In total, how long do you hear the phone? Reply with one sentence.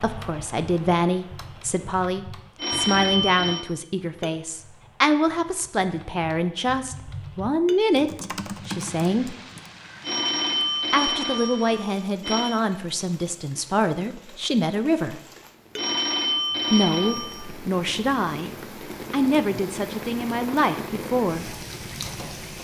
You can hear the phone for 5 seconds altogether.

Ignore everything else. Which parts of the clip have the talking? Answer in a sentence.
The talking can be heard from 0.0 to 9.3 s, from 10.9 to 15.2 s, from 16.7 to 18.5 s and from 19.1 to 21.5 s.